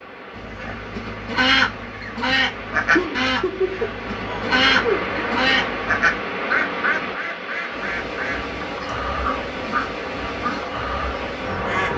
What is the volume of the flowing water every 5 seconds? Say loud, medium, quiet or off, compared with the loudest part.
medium, loud, loud.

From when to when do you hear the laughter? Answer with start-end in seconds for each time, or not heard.
3.0-5.1.